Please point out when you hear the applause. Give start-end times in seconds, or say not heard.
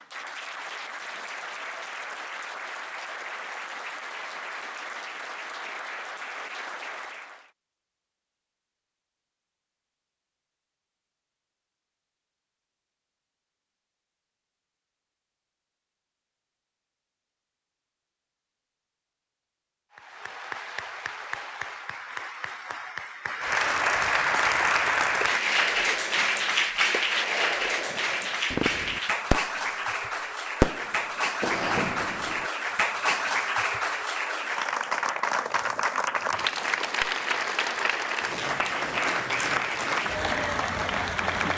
0.0-7.5, 19.9-41.5.